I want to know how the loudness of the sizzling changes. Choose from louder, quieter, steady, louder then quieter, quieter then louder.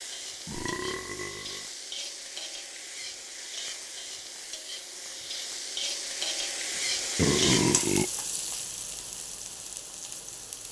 louder then quieter.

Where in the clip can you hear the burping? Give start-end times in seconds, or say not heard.
0.5-1.7, 6.8-8.1.